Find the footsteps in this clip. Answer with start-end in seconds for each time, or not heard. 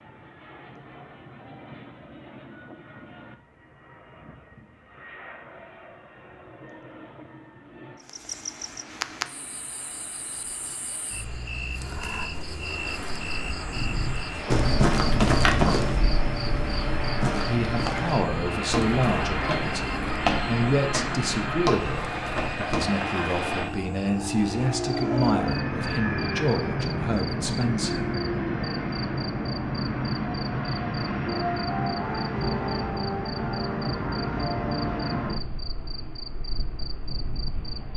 13.7-22.9.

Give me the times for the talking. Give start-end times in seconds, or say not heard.
17.3-28.1.